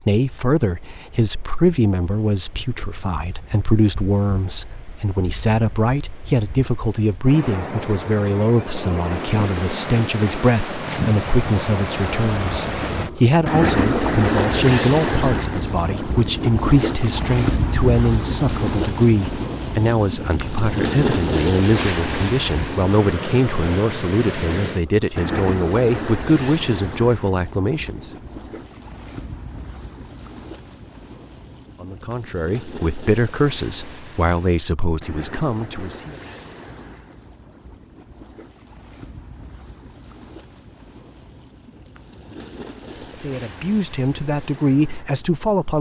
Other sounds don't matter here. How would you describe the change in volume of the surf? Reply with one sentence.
The volume of the surf goes up, then down.